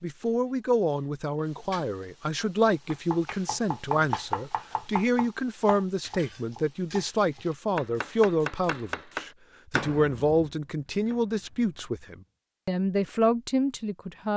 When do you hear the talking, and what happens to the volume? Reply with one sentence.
The talking can be heard from 0.0 to 14.3 s, at a steady volume.